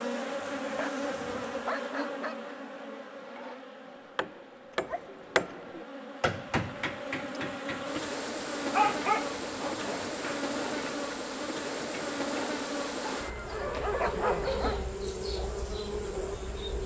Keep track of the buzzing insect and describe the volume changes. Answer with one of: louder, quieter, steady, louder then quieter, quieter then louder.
quieter then louder.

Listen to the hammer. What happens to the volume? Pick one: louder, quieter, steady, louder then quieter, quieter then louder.
louder then quieter.